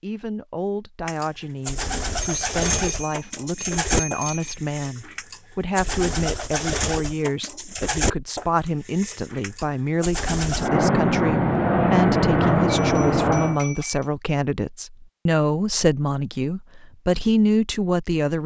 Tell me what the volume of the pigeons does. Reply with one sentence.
The loudness of the pigeons goes down.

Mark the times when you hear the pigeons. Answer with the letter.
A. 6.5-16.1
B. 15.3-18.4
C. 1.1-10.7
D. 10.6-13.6
C.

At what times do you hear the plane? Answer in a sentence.
You can hear the plane from 10.6 to 13.6 s.